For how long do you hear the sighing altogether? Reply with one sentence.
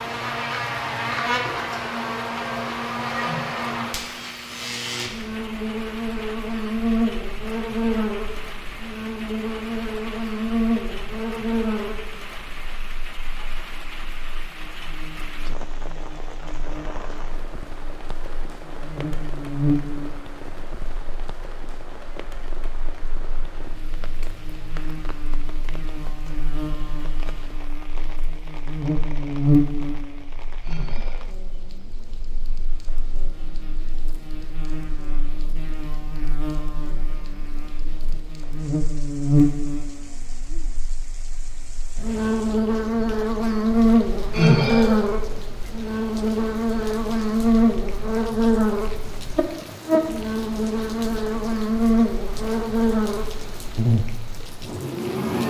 You can hear the sighing for 2 seconds altogether.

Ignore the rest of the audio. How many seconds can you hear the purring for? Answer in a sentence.
You can't hear the purring here.